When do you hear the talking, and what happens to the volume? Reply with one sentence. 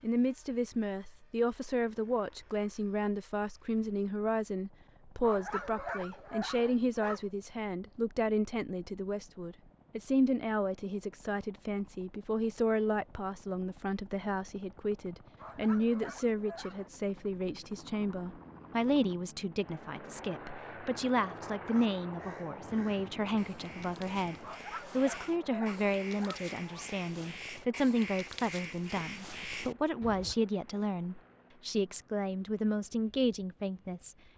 The talking can be heard from 0.0 to 34.1 s, at a steady volume.